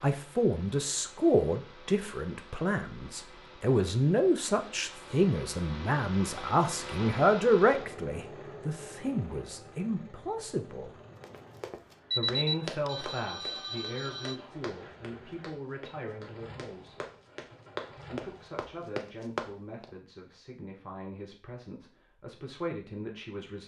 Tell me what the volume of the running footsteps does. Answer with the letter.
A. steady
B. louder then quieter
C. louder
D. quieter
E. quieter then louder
E.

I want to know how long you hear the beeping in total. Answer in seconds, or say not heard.
2 s.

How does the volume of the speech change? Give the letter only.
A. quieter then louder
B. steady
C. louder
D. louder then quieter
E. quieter
E.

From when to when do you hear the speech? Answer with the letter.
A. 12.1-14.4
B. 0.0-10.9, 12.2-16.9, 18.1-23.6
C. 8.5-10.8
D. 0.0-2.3
B.